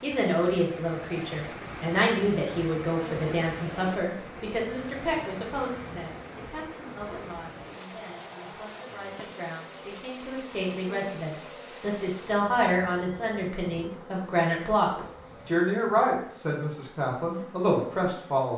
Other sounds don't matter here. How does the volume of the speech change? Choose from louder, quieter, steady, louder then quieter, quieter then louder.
quieter then louder.